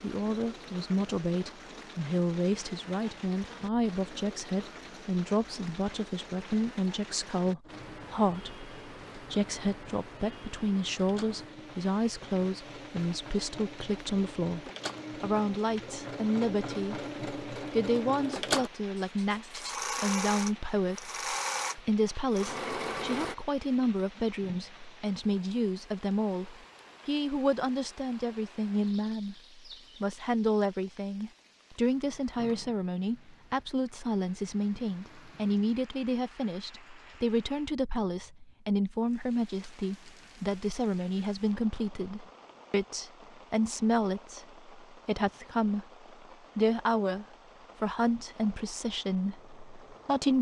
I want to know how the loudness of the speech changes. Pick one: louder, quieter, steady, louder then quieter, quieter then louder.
steady.